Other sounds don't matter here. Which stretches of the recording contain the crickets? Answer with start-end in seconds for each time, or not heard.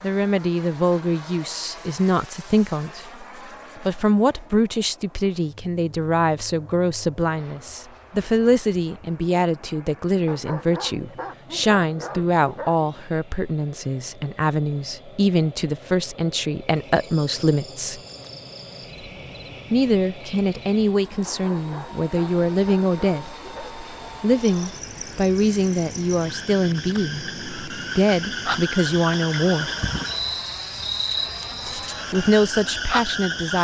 16.6-33.5.